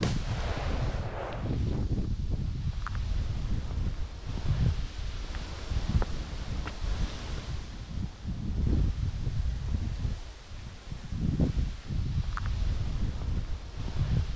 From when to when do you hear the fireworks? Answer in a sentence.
You can hear the fireworks from 0.0 to 1.5 s.